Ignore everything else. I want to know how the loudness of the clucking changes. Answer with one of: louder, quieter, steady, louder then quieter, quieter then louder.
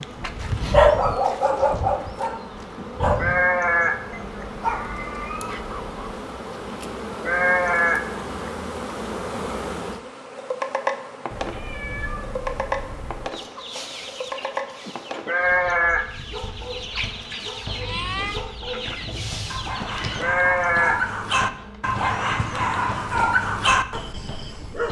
quieter then louder.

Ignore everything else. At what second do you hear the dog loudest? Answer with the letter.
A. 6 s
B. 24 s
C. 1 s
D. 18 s
C.